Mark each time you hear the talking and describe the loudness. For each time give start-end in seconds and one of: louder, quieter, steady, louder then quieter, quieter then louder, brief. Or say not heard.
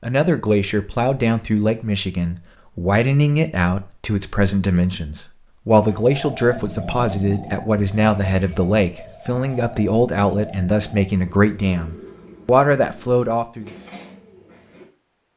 0.0-13.7 steady.